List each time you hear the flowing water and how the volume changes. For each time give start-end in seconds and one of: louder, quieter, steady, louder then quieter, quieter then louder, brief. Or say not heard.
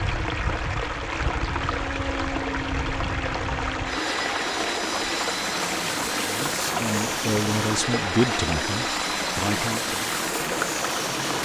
0.0-11.4 steady.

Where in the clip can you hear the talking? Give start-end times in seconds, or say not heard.
6.2-10.0.